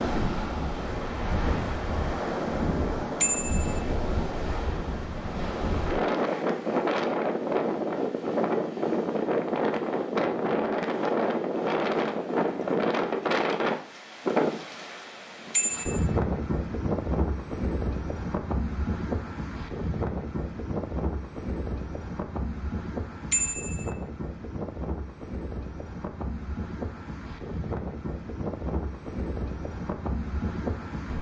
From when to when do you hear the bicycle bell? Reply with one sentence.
The bicycle bell can be heard from 3.2 to 3.8 s, from 15.5 to 16.1 s and from 23.3 to 23.9 s.